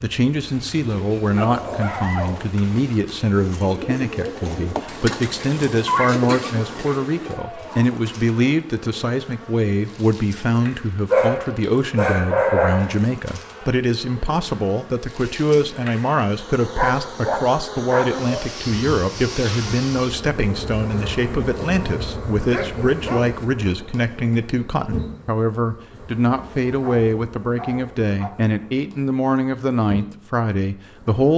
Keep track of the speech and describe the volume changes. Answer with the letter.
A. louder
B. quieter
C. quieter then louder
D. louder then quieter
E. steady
E.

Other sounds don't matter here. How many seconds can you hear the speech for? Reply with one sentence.
You can hear the speech for 31 seconds altogether.